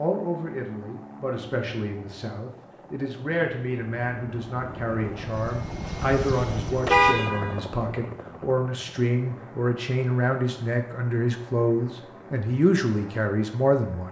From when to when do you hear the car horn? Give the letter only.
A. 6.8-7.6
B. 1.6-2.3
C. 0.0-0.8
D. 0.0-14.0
A.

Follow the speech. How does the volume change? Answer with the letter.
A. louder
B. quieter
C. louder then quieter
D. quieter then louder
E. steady
A.